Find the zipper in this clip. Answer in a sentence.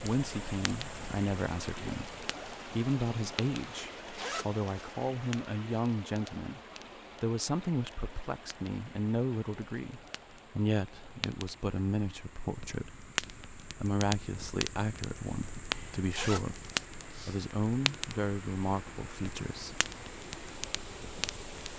You can hear the zipper from 4.0 to 4.9 s and from 15.7 to 17.4 s.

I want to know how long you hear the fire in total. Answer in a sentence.
The fire can be heard for 22 seconds in total.